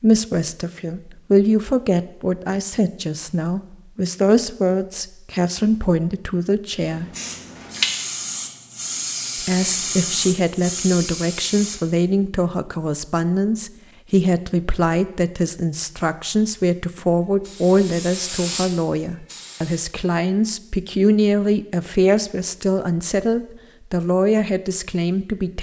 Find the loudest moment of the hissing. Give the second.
8 s.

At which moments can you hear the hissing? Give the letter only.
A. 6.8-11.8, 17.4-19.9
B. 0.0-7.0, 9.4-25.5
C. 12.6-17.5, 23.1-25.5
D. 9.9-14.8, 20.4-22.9
A.